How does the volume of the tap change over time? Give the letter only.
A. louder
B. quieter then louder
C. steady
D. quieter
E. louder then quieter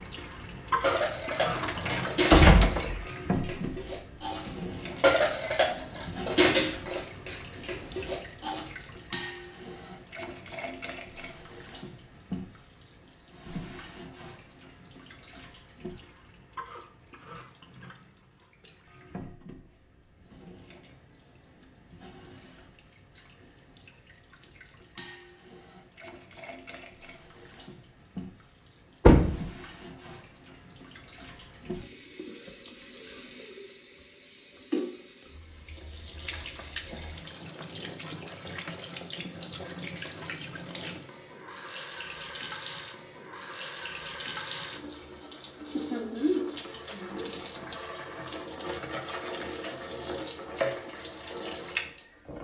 B.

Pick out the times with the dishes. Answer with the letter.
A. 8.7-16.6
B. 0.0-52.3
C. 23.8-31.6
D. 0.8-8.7
D.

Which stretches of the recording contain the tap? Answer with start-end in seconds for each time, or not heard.
0.0-52.3.